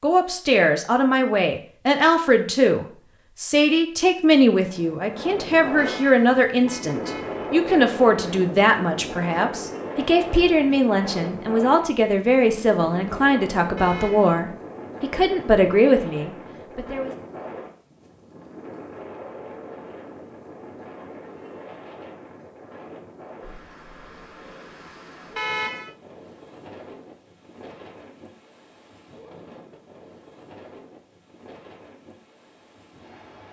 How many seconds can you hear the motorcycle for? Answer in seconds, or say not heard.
not heard.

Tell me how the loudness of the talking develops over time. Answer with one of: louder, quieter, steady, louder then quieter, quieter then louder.
steady.